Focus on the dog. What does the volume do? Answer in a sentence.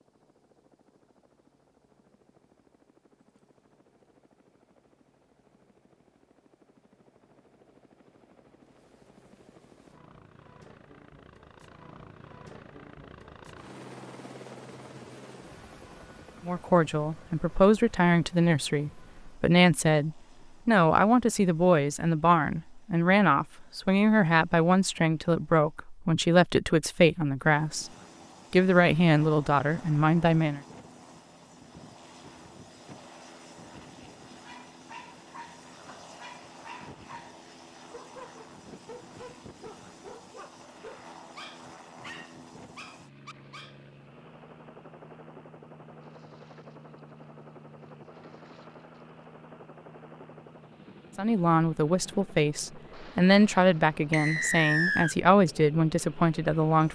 The loudness of the dog stays about the same.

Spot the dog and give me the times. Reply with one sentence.
You can hear the dog from 34.4 to 43.8 s.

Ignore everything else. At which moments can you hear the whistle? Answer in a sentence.
You can hear the whistle from 54.1 to 55.1 s.